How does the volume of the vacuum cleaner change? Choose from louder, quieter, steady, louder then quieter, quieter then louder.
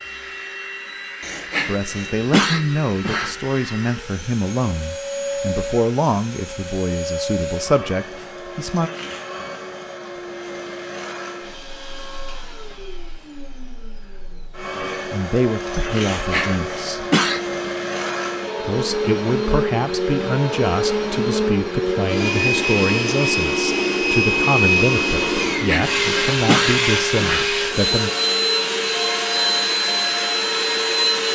louder.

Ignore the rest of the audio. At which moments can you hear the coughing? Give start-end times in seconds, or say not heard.
1.2-3.4, 16.1-17.9, 25.4-27.9.